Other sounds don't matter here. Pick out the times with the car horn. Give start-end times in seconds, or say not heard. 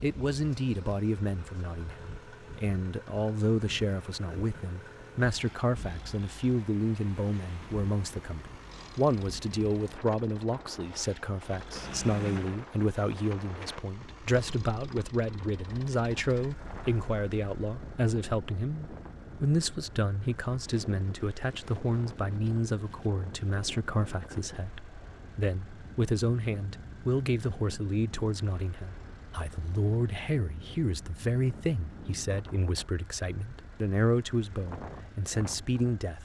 11.8-12.6.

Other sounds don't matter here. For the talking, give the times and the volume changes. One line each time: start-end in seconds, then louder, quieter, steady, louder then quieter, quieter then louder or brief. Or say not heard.
0.0-36.2 steady.